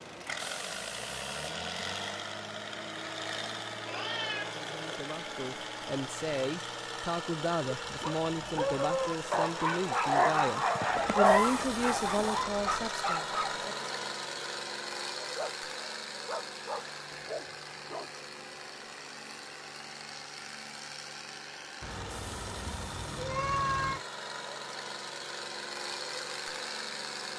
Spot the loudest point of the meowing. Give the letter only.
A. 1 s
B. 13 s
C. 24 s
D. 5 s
C.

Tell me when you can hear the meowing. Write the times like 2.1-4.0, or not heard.
3.9-5.0, 10.8-12.9, 21.8-24.1.